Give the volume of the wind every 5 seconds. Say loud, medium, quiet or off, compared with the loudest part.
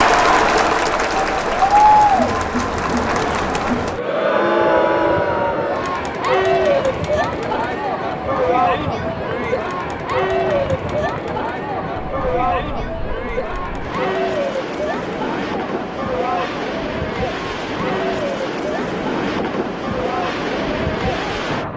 medium, medium, medium, loud, loud.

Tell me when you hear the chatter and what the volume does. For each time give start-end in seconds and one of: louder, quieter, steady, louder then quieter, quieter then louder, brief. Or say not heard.
0.0-21.7 quieter.